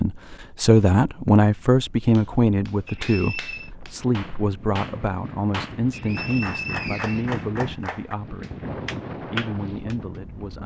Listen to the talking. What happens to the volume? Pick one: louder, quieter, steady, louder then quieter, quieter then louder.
quieter.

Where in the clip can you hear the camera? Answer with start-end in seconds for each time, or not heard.
not heard.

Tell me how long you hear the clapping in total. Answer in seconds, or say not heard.
8 s.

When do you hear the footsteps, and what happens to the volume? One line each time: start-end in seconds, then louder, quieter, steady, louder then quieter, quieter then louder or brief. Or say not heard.
not heard.